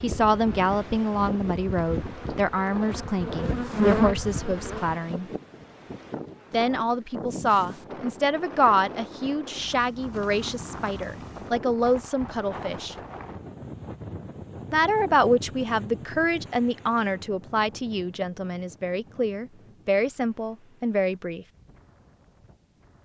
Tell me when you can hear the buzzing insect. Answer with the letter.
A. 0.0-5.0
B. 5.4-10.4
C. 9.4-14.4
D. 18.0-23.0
A.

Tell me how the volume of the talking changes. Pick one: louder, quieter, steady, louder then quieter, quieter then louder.
steady.